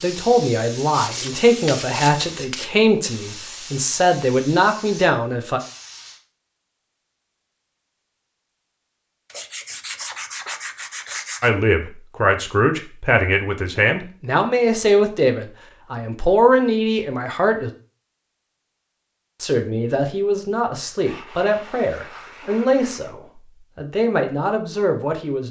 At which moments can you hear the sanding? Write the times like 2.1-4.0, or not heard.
0.9-2.6, 9.3-11.5, 21.1-23.1.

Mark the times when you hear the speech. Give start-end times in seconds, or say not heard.
0.0-5.6, 11.4-17.7, 19.4-25.4.